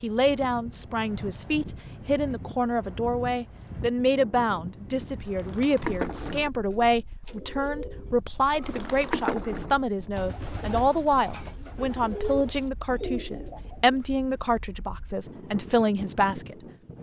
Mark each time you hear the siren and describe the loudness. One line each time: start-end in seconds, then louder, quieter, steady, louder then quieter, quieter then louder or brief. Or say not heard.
not heard.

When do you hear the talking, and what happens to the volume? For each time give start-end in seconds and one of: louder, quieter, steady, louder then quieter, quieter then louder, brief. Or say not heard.
0.0-16.6 steady.